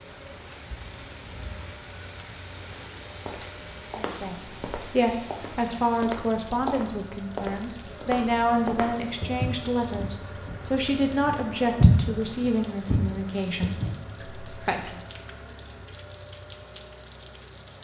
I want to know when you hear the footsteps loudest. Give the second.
12 s.